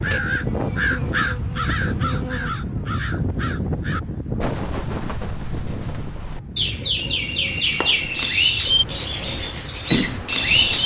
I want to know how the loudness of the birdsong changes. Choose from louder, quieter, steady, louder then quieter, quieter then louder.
quieter then louder.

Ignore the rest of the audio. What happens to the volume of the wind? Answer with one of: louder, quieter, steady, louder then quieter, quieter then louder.
quieter.